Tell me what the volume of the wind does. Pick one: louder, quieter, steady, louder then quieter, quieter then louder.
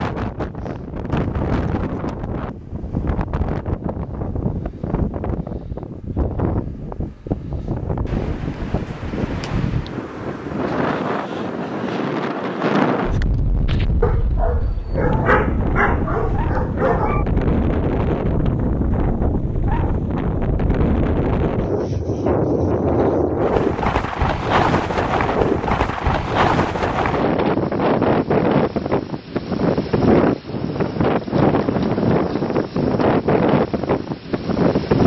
louder.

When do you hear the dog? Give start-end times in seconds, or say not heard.
13.7-17.2.